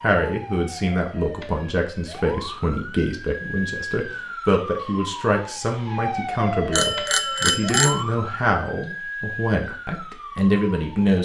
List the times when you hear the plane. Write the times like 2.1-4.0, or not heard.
not heard.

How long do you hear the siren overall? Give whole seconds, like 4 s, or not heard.
11 s.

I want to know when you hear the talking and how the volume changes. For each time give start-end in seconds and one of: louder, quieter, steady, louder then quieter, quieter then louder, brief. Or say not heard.
0.0-11.2 steady.